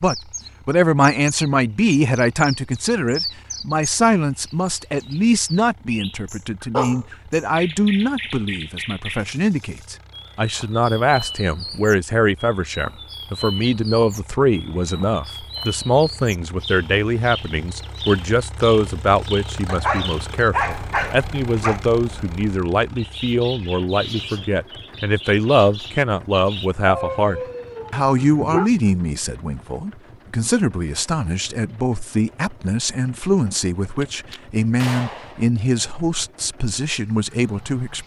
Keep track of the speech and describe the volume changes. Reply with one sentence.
The loudness of the speech stays about the same.